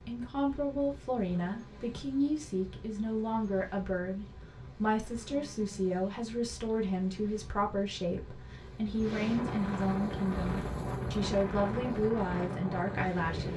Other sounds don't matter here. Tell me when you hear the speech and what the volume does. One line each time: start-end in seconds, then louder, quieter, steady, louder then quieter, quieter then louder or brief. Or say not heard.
0.0-13.5 steady.